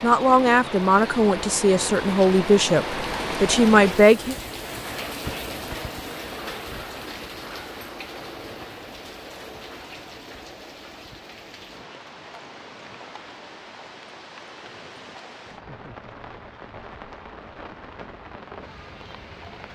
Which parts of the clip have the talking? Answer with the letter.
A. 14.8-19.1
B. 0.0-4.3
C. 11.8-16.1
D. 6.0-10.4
B.